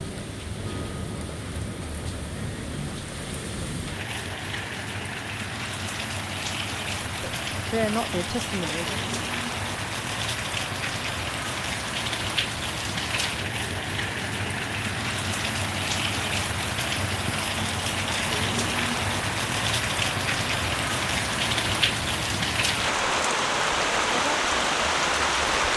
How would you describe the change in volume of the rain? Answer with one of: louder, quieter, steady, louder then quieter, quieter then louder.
louder.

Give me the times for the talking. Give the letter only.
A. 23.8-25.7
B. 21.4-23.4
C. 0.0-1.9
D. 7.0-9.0
D.